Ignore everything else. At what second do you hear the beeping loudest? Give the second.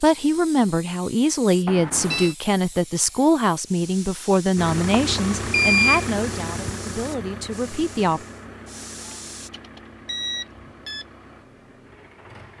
6 s.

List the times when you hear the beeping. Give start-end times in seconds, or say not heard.
1.6-2.4, 5.0-6.0, 9.1-11.1.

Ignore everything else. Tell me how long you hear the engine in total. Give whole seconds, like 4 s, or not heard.
8 s.